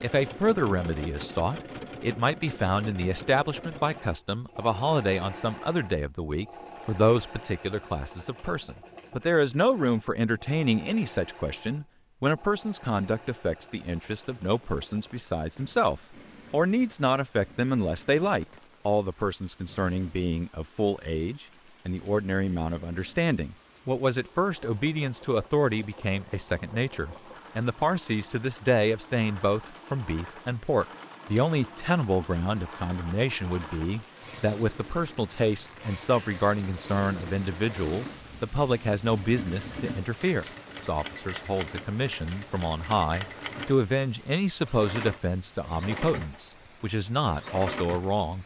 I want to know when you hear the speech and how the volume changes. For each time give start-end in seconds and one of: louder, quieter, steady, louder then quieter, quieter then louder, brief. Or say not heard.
0.0-48.4 steady.